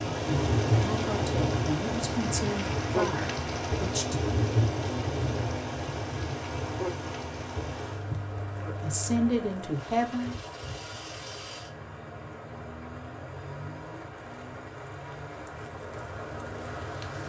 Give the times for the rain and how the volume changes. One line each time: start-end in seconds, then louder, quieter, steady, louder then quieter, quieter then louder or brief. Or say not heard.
0.0-17.2 quieter.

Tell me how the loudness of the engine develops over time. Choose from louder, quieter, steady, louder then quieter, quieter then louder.
quieter.